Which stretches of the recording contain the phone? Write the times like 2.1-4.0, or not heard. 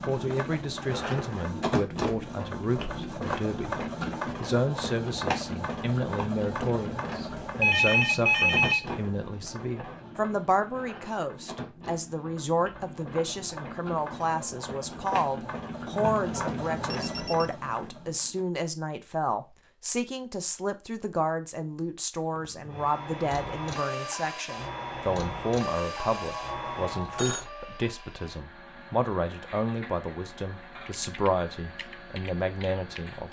7.6-8.9, 15.9-17.5, 26.1-27.4.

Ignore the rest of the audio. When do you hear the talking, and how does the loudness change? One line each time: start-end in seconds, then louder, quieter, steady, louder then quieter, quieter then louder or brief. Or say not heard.
0.1-33.2 steady.